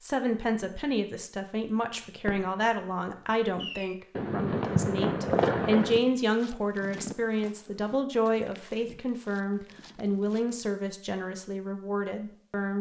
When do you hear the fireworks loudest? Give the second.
5 s.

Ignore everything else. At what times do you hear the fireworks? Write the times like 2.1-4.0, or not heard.
1.8-6.0.